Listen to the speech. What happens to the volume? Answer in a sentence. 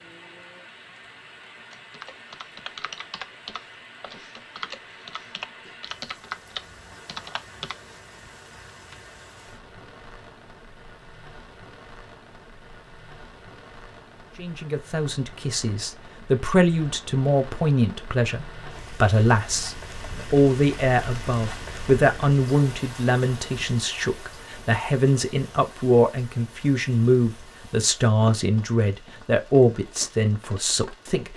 The volume of the speech stays about the same.